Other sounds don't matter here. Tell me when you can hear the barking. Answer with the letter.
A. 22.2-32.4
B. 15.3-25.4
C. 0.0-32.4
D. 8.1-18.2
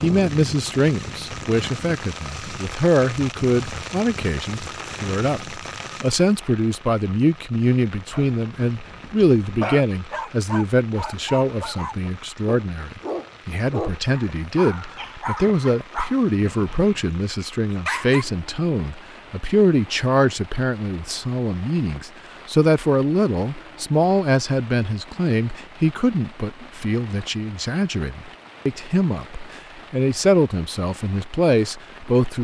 D.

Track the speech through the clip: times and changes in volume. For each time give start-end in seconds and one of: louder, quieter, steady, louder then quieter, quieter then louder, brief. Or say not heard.
0.0-32.4 steady.